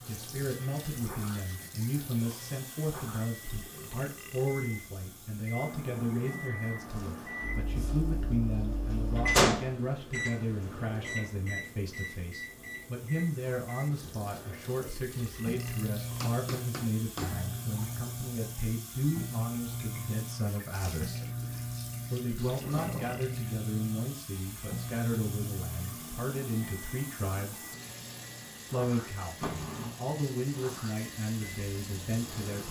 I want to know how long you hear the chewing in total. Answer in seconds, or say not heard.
not heard.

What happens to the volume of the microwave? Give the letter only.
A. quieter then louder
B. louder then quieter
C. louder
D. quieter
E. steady
B.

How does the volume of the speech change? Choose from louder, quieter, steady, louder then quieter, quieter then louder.
steady.